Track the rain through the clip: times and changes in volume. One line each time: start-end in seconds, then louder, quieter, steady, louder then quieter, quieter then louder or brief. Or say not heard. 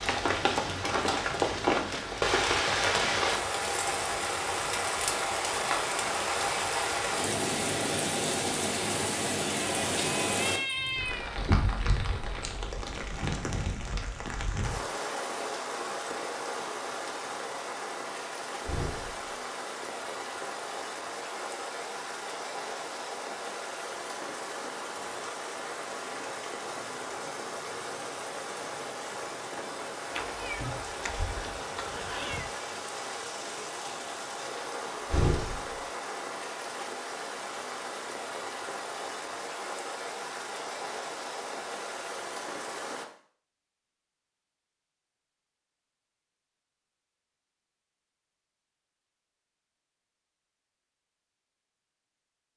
0.0-43.0 quieter.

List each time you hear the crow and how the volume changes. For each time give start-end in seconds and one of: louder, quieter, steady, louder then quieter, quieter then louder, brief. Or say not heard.
not heard.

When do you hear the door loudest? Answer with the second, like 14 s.
35 s.